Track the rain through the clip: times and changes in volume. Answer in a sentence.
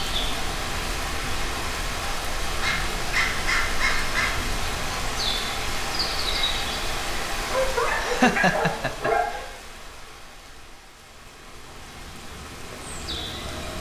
The rain can be heard from 0.0 to 13.7 s, getting quieter.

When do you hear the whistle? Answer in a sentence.
You can't hear the whistle here.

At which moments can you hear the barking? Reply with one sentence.
You can hear the barking from 2.6 to 4.3 s and from 7.5 to 9.4 s.